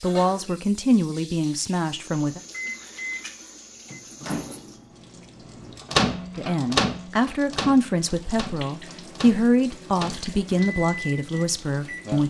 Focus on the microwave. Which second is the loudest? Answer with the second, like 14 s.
6 s.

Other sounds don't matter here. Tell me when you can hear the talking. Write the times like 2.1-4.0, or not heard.
0.0-2.4, 6.3-12.2.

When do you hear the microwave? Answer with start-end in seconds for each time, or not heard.
2.5-12.2.